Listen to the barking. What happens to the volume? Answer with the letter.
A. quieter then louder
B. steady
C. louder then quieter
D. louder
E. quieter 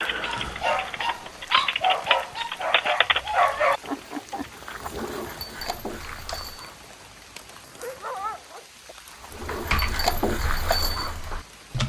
A.